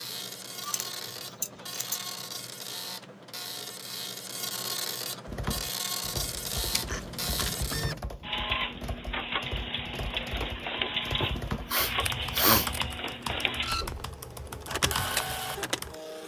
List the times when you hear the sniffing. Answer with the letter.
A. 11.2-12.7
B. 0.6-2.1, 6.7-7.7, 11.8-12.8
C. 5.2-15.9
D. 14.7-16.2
A.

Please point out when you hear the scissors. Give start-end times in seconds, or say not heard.
0.6-2.1, 6.7-7.7, 11.8-12.8.